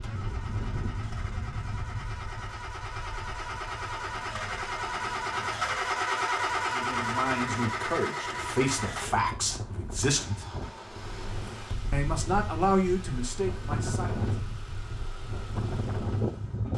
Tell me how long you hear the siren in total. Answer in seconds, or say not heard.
not heard.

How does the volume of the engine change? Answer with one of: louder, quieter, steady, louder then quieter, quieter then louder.
louder then quieter.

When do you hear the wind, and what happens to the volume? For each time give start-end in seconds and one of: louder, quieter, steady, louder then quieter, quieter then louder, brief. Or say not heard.
0.0-16.7 quieter then louder.